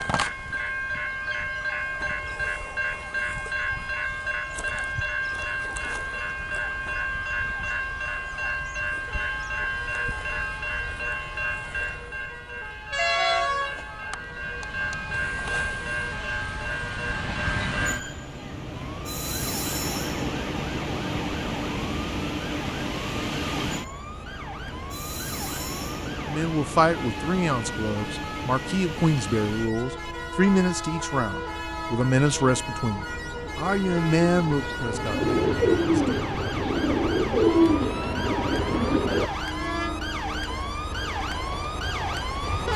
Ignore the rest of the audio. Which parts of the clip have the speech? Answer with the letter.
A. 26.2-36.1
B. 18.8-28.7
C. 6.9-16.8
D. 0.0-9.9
A.